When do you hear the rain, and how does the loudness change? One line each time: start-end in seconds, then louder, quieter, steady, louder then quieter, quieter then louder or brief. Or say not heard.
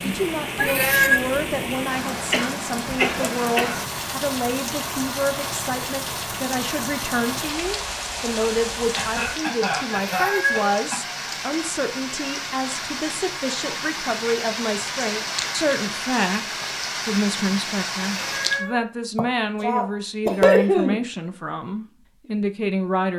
0.0-18.6 steady.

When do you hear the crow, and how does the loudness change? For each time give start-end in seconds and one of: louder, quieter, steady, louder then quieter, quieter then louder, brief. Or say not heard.
not heard.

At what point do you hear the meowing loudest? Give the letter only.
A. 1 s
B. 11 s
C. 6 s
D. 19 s
A.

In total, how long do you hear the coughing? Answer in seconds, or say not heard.
5 s.